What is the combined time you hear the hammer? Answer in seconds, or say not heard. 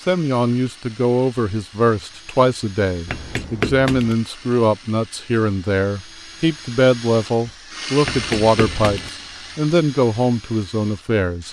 2 s.